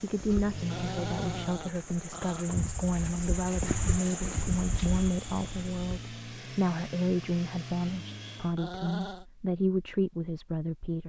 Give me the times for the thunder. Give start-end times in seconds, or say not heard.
not heard.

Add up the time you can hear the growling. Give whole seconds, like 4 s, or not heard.
3 s.